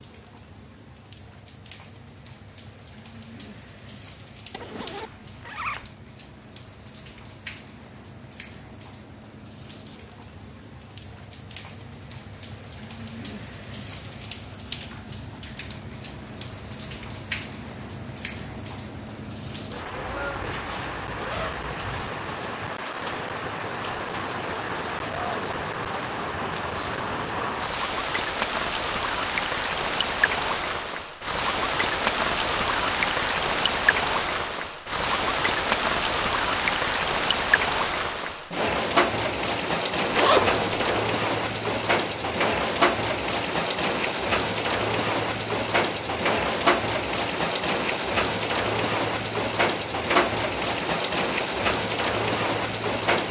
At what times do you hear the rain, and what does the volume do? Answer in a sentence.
The rain can be heard from 0.0 to 53.2 s, getting louder.